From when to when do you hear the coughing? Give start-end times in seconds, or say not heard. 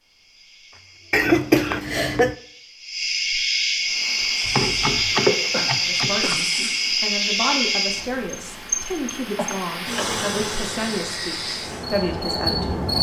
1.1-2.4, 5.5-7.0, 9.3-10.2.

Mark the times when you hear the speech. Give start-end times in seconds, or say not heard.
5.8-12.8.